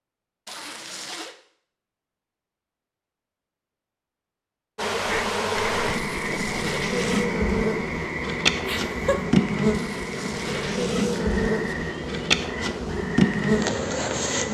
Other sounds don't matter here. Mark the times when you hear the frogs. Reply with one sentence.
You can hear the frogs from 5.0 to 14.4 s.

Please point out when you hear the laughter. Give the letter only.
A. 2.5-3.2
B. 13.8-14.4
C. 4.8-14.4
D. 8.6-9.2
D.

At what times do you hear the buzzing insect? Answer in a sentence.
You can hear the buzzing insect from 4.8 to 14.4 s.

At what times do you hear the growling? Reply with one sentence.
You can't hear the growling here.